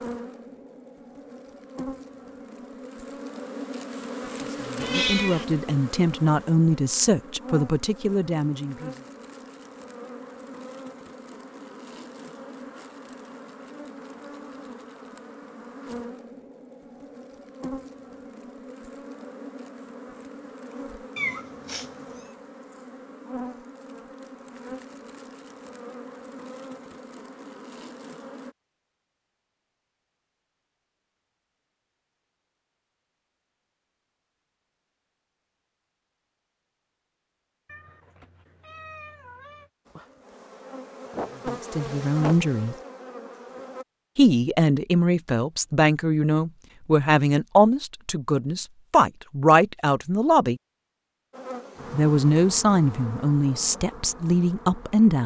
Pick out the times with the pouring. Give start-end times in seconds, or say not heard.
not heard.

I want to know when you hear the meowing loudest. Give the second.
5 s.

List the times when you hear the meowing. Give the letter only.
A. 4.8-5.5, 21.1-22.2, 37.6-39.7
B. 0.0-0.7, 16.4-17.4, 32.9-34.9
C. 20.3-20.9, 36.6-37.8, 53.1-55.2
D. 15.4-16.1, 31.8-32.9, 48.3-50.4
A.